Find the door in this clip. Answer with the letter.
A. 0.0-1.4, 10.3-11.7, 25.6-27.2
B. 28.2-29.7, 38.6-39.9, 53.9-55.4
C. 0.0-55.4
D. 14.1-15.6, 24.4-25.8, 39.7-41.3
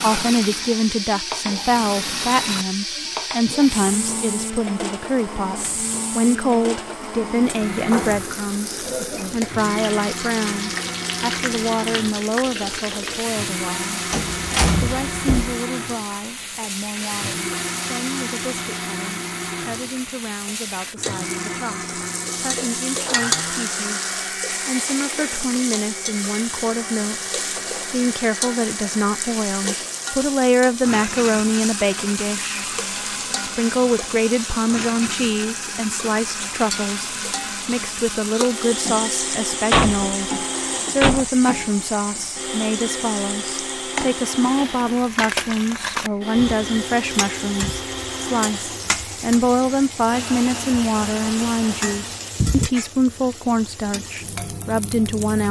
D.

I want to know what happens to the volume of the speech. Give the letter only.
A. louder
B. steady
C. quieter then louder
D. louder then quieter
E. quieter
C.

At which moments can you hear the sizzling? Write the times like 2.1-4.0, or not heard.
0.0-55.4.